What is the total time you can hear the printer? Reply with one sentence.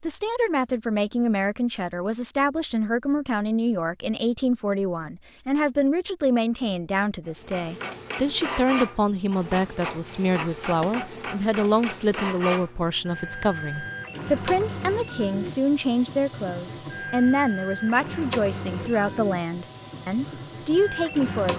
The printer can be heard for 14 seconds in total.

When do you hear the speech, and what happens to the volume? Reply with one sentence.
You can hear the speech from 0.0 to 21.5 s, at a steady volume.